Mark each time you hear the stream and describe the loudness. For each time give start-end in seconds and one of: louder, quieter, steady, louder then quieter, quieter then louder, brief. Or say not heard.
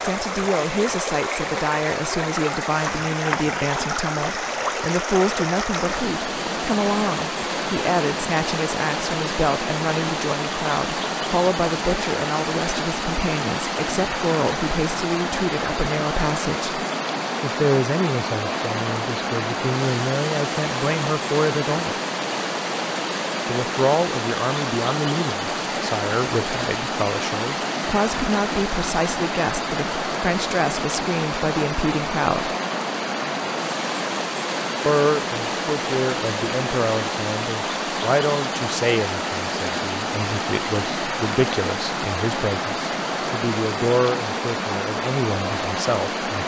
0.0-46.4 steady.